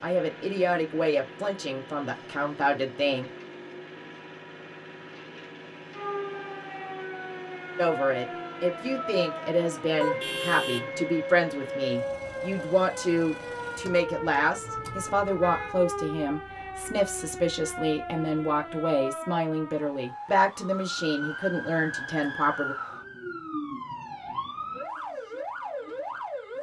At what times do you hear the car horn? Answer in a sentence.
You can hear the car horn from 10.0 to 11.0 s and from 13.8 to 15.8 s.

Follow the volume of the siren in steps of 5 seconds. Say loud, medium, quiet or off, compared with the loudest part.
off, loud, loud, loud, loud, loud.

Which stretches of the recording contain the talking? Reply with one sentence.
The talking can be heard from 0.0 to 3.3 s and from 7.8 to 22.8 s.